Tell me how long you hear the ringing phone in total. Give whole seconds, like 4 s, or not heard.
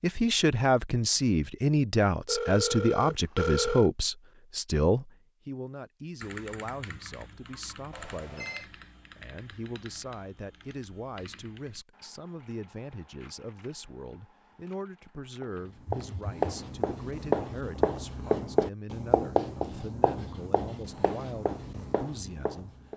3 s.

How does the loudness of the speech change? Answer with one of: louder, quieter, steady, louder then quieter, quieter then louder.
quieter.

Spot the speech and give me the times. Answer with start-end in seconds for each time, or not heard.
0.0-22.8.